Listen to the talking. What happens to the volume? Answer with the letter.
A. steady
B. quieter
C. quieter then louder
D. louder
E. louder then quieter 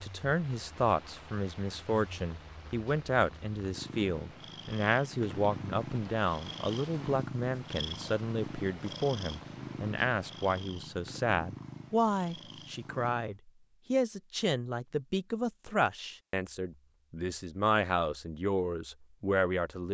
A.